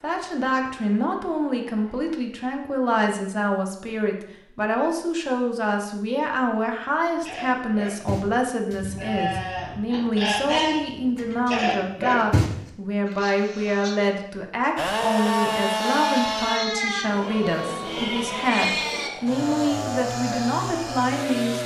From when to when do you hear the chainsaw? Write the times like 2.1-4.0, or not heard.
0.0-2.1, 14.8-16.6, 18.9-21.6.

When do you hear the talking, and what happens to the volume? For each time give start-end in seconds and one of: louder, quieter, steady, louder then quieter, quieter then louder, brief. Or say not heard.
0.0-21.6 steady.